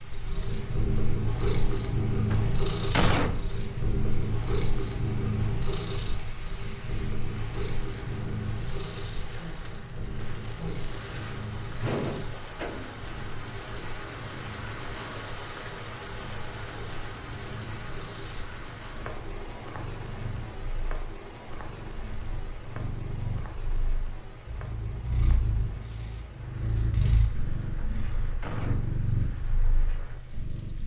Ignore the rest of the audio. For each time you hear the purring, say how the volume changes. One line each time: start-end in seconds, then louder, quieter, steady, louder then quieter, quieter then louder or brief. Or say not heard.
0.0-30.8 quieter then louder.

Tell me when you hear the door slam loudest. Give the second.
3 s.